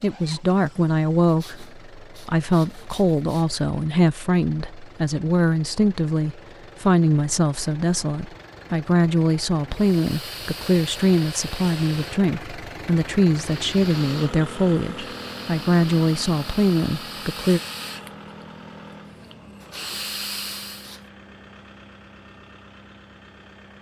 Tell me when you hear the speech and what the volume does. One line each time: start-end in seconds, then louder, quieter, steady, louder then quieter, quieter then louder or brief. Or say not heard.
0.0-17.6 steady.